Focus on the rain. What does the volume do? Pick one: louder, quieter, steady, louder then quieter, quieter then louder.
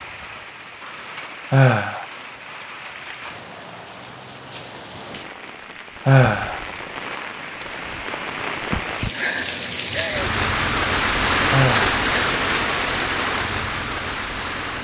louder.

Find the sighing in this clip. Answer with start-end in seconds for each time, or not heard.
1.5-2.0, 6.0-6.6, 11.5-11.9.